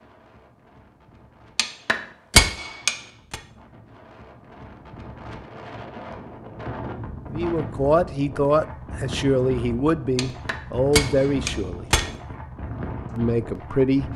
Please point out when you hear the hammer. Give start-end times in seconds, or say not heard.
1.6-3.4, 10.2-12.1.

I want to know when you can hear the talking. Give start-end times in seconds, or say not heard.
7.3-11.8, 13.2-14.1.